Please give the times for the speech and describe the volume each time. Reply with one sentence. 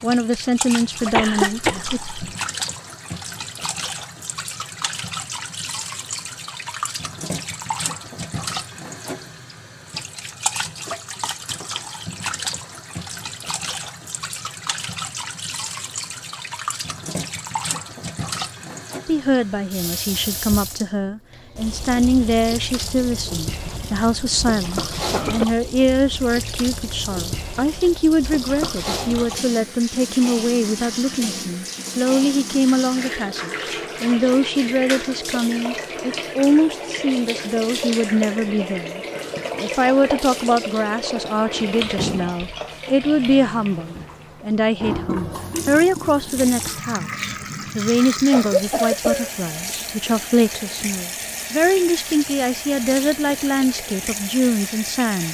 The speech can be heard briefly from 0.0 to 2.0 s; and from 19.1 to 55.2 s, at a steady volume.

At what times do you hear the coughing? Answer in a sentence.
You can hear the coughing from 1.1 to 2.4 s, from 23.6 to 25.4 s and from 48.2 to 49.3 s.